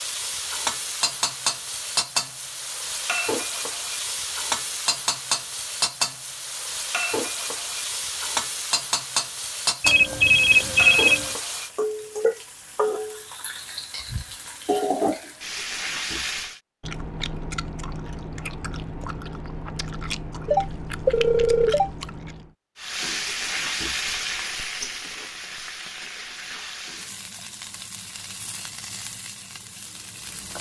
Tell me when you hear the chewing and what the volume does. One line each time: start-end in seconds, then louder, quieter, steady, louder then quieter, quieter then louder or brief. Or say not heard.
16.8-22.6 steady.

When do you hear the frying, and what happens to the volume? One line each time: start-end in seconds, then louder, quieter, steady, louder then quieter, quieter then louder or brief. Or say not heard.
0.0-16.6 steady
22.8-30.5 quieter.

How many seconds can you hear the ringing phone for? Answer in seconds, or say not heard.
3 s.